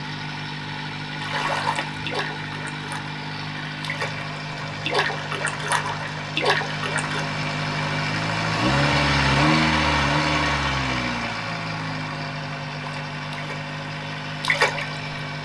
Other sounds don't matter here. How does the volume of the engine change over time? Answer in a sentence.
The volume of the engine goes up, then down.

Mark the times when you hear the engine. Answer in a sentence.
You can hear the engine from 0.0 to 15.4 s.